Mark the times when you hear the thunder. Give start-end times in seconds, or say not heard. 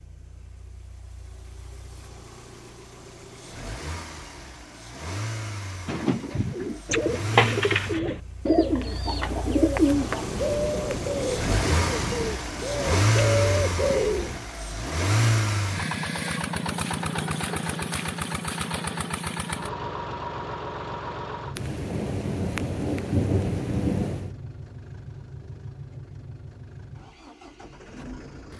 10.1-12.4, 21.6-24.4.